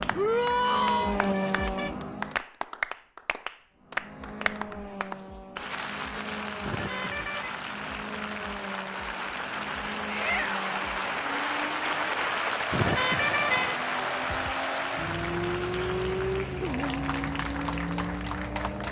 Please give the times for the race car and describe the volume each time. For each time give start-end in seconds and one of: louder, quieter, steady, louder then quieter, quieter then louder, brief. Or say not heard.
0.0-2.4 brief
3.8-18.8 louder.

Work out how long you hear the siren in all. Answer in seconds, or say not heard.
not heard.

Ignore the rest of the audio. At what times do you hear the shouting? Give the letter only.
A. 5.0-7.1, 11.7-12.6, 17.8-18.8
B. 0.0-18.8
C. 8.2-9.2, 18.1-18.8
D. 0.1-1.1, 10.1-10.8
D.